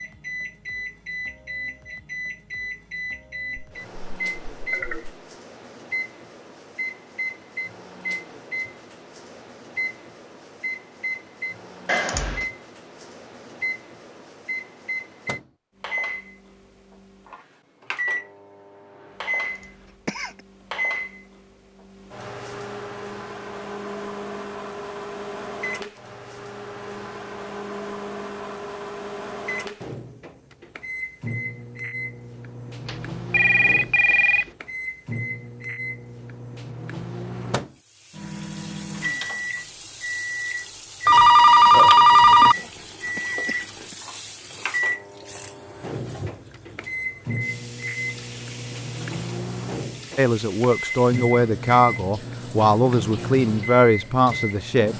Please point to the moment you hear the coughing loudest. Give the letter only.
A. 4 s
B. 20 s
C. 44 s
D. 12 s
D.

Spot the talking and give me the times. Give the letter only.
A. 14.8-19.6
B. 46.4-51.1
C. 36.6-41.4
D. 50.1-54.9
D.